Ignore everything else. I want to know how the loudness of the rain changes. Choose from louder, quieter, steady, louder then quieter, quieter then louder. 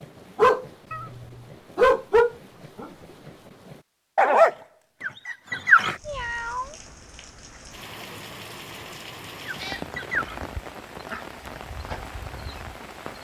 louder.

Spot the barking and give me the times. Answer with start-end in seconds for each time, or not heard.
0.0-6.0, 9.4-12.9.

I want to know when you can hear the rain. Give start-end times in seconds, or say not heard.
5.9-13.1.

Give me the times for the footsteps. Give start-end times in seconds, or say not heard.
not heard.